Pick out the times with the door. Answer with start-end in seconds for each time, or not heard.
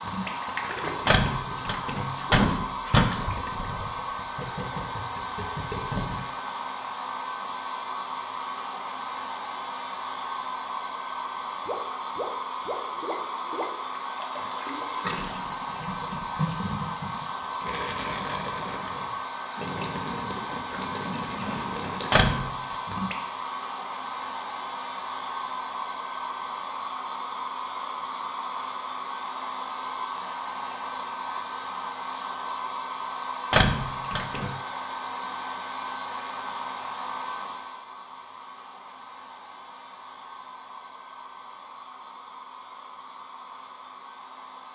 1.1-3.0, 22.1-22.8, 33.5-34.5.